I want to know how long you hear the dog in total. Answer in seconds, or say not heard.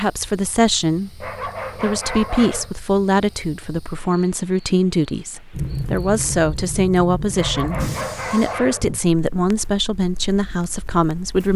3 s.